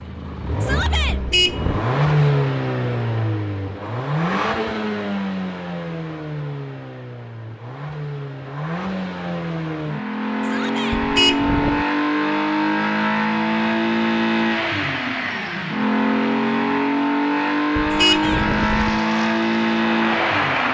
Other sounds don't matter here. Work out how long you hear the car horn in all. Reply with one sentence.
The car horn can be heard for 3 seconds in total.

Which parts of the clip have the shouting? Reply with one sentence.
You can hear the shouting from 0.6 to 1.2 s, from 10.4 to 11.0 s and from 18.1 to 18.5 s.